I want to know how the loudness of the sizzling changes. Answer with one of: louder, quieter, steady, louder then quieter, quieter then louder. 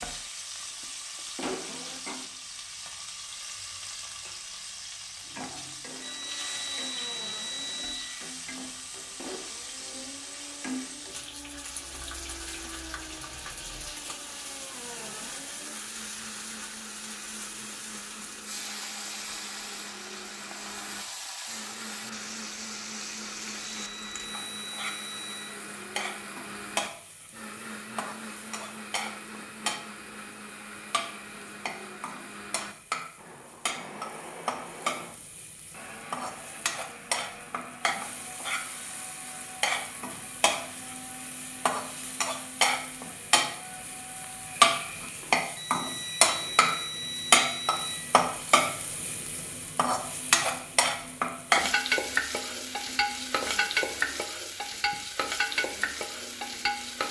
louder.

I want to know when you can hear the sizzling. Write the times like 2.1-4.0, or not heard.
0.0-57.0.